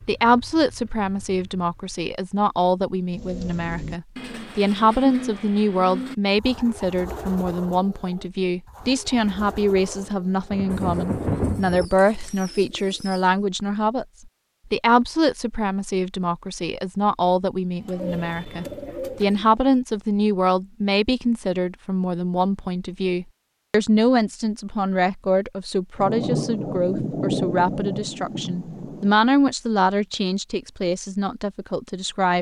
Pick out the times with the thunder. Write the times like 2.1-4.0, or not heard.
10.5-11.9, 25.9-29.1.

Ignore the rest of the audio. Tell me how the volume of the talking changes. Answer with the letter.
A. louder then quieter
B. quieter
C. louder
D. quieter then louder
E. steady
E.